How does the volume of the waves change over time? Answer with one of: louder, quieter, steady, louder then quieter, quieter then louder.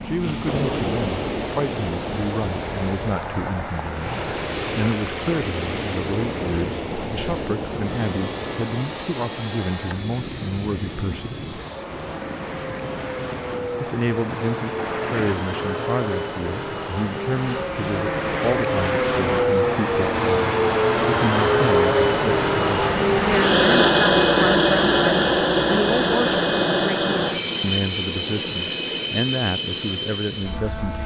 quieter.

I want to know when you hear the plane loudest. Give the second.
24 s.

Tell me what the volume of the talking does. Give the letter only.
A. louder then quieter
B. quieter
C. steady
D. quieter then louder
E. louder
C.